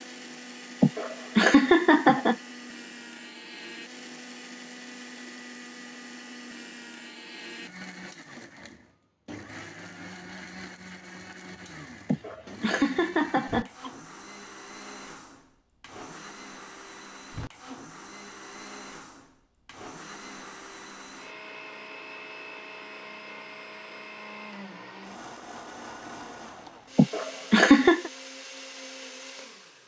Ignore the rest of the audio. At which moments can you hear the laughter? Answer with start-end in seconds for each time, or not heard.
0.8-2.4, 12.1-13.9, 26.9-28.1.